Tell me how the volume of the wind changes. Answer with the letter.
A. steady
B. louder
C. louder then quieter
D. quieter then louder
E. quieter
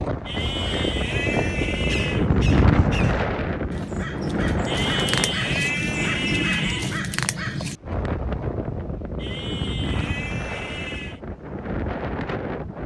E.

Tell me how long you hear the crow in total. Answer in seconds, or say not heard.
7 s.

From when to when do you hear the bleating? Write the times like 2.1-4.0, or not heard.
0.2-2.3, 4.7-7.0, 9.2-11.2.